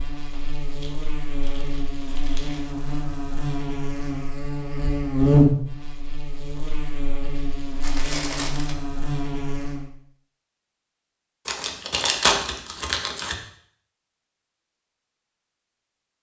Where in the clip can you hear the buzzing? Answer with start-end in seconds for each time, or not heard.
0.0-9.8.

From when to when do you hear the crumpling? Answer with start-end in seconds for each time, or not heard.
0.3-2.6, 7.8-8.8, 11.4-13.3.